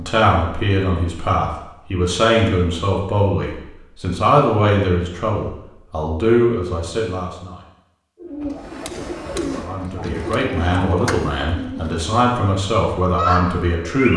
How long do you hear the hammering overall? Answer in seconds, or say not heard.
2 s.